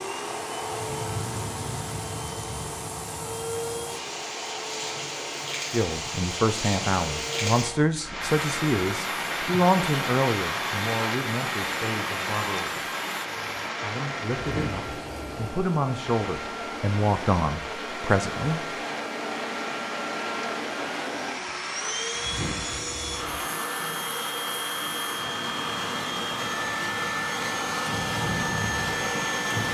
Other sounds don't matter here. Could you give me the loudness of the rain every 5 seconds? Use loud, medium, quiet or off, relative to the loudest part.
medium, loud, loud, medium, medium, medium.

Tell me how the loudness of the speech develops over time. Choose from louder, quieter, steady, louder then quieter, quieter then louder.
quieter then louder.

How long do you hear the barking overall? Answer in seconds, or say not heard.
not heard.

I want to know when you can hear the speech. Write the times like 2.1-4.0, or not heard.
5.7-12.9, 13.8-18.6.